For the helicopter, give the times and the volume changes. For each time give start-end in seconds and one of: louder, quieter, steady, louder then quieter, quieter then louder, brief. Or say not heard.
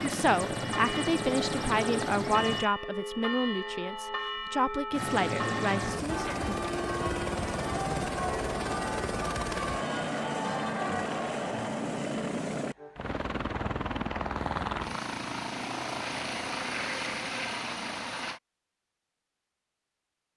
0.0-2.6 brief
4.9-18.4 steady.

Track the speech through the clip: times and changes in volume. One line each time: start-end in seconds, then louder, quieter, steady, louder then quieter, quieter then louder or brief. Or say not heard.
0.0-6.3 steady.